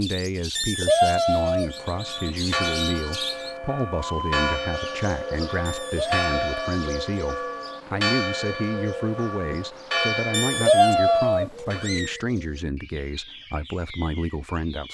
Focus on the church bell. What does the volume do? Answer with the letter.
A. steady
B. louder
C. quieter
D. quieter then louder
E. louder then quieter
A.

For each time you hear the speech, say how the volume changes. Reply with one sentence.
You can hear the speech from 0.0 to 14.8 s, at a steady volume.